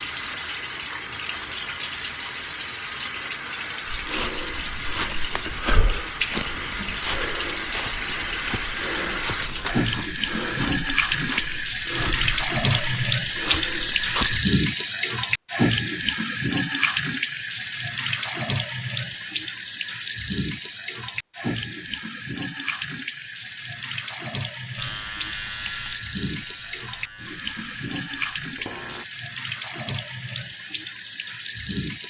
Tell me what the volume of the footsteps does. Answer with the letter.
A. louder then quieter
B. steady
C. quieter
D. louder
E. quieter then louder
B.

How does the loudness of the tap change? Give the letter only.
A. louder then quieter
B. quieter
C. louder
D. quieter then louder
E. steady
A.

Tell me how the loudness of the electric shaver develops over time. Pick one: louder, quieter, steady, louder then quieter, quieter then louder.
quieter.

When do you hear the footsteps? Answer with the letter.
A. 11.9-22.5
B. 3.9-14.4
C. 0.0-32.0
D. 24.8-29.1
B.